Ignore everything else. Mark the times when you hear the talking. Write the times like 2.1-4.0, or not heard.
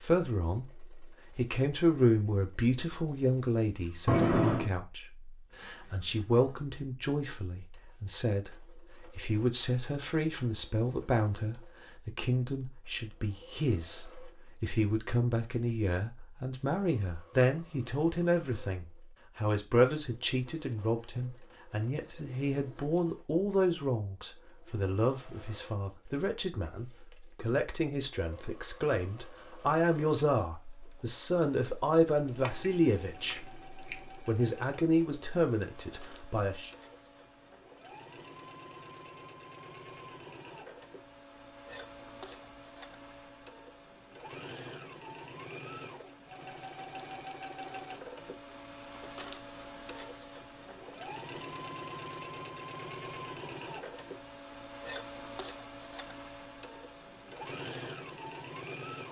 0.0-33.5, 34.2-36.7.